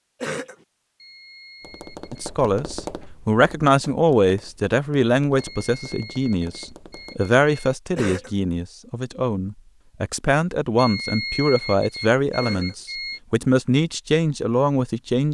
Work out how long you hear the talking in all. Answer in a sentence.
The talking can be heard for 13 seconds in total.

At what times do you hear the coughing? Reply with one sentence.
The coughing can be heard from 0.2 to 0.7 s, from 8.0 to 8.4 s and from 12.4 to 12.8 s.